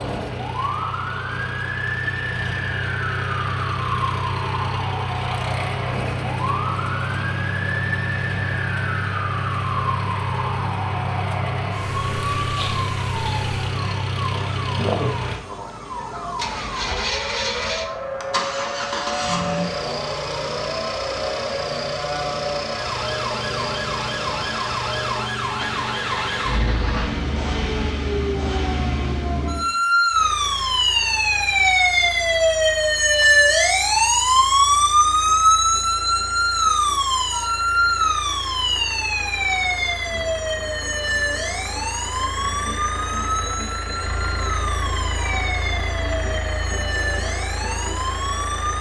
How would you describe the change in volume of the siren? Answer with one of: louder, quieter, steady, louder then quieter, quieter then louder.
louder then quieter.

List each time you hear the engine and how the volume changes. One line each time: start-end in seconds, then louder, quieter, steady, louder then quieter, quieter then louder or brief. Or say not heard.
0.0-48.7 quieter then louder.